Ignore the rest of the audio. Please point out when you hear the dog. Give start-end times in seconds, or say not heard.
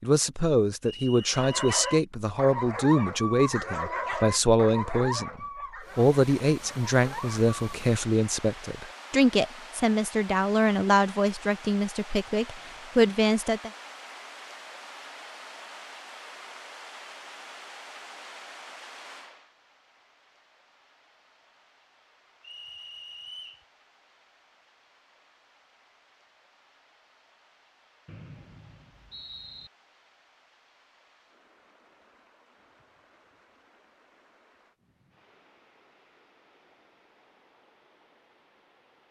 1.2-7.8.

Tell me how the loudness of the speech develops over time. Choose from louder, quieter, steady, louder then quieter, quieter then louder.
steady.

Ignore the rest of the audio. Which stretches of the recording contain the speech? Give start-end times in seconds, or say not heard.
0.0-13.7.